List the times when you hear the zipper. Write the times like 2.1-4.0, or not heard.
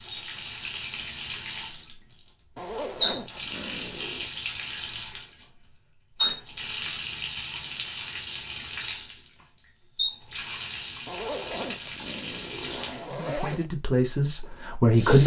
2.5-4.3, 11.1-13.7.